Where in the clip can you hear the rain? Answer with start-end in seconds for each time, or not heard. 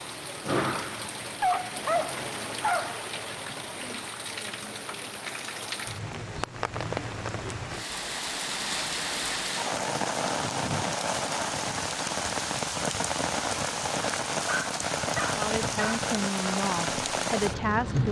0.0-18.0.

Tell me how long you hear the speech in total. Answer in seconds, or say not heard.
3 s.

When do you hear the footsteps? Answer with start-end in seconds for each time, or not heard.
not heard.